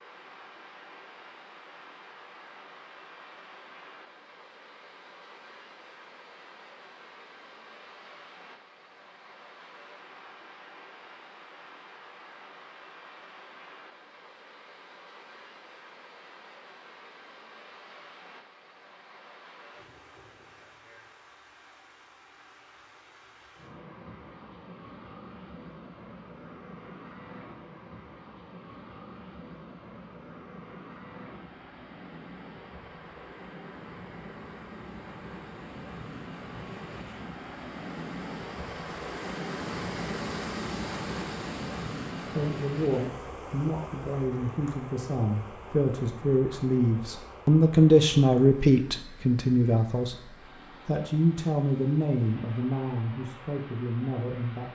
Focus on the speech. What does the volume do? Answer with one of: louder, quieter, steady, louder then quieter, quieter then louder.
louder then quieter.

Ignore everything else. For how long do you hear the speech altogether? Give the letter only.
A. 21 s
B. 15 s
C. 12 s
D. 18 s
C.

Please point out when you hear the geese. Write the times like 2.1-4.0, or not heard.
not heard.